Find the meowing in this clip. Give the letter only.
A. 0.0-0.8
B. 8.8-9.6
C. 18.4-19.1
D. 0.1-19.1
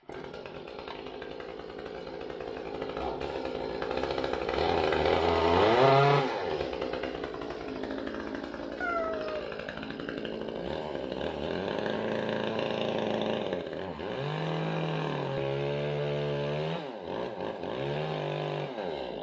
B.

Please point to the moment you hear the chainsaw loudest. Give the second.
6 s.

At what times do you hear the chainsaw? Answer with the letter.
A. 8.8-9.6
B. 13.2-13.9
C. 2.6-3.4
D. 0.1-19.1
D.